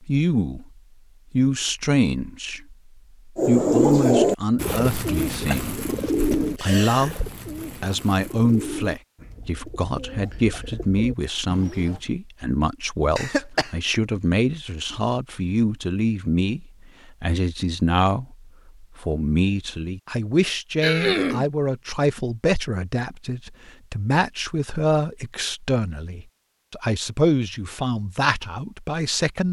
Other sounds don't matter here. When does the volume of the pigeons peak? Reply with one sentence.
The loudest moment of the pigeons is at 4 seconds.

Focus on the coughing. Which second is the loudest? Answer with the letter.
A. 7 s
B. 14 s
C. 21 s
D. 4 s
C.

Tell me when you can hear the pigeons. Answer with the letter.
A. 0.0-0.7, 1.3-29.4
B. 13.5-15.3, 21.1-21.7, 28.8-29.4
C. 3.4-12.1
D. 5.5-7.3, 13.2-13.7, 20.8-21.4
C.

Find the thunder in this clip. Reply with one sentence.
You can't hear the thunder here.